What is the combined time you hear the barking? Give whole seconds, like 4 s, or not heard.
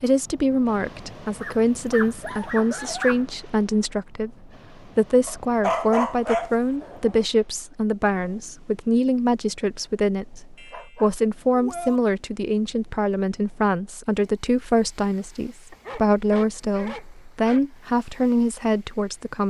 7 s.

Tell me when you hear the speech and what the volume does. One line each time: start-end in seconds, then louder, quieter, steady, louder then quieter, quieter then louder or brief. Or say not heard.
0.0-19.4 steady.